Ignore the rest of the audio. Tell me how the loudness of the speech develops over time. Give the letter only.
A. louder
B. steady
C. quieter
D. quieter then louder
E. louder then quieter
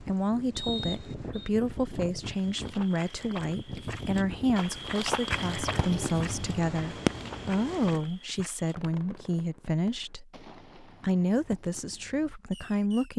B.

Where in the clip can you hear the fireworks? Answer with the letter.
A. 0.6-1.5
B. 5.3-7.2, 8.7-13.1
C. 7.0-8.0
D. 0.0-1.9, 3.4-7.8
B.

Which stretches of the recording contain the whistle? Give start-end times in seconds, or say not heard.
0.6-1.5.